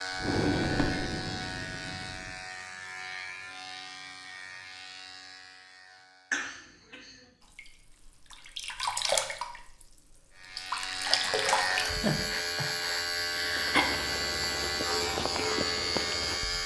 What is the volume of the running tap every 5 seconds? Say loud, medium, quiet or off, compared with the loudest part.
off, loud, loud, off.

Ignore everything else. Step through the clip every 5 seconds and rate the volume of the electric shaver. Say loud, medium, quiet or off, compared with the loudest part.
medium, quiet, loud, loud.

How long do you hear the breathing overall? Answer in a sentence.
You can hear the breathing for 4 seconds altogether.